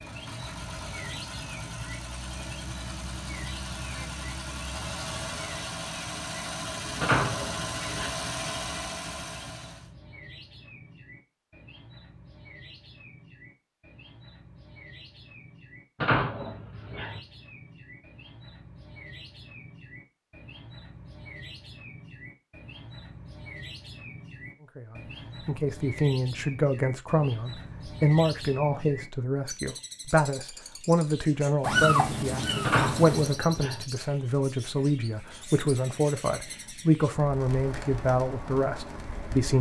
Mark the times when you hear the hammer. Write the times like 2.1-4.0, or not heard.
not heard.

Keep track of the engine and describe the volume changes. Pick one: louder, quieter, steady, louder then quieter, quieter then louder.
louder.